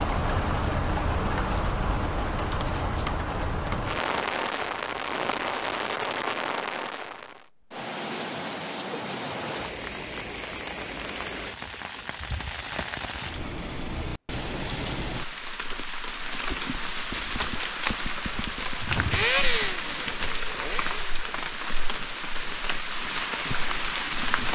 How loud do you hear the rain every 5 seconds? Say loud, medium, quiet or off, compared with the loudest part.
loud, loud, medium, loud, loud.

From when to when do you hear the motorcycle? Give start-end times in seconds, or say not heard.
18.8-21.1.